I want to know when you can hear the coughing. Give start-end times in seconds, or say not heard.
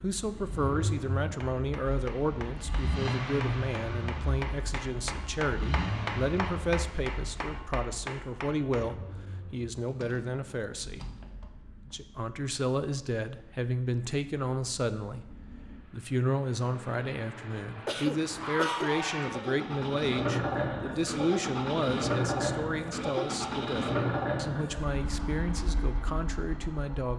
17.5-19.1.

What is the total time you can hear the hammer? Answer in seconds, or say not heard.
8 s.